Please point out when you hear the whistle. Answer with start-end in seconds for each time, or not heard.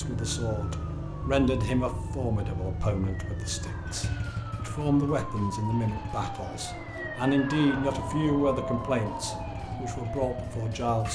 not heard.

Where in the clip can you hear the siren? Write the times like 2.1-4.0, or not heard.
0.0-11.0.